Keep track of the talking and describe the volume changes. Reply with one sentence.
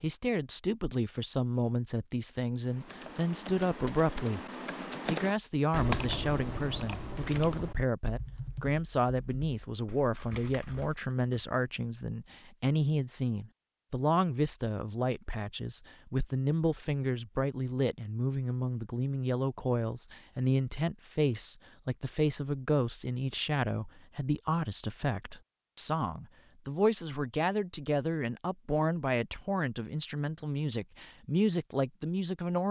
The volume of the talking stays about the same.